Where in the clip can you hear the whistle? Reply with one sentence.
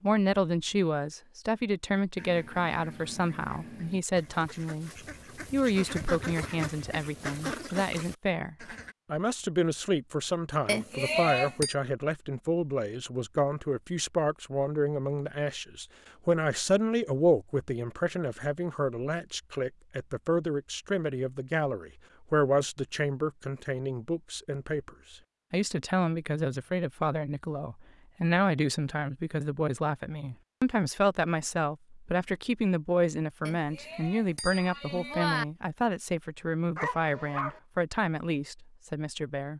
You can't hear the whistle here.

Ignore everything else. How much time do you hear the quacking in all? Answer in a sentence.
The quacking can be heard for 7 seconds in total.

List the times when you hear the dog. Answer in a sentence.
You can hear the dog from 36.8 to 37.6 s.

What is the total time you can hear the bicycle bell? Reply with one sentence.
You can hear the bicycle bell for 3 seconds altogether.